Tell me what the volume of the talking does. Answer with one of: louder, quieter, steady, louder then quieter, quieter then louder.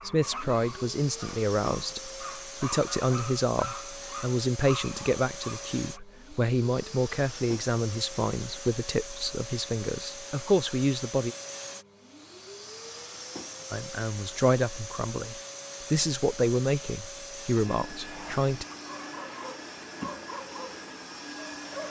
steady.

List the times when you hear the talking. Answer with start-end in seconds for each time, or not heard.
0.1-11.3, 13.7-18.6.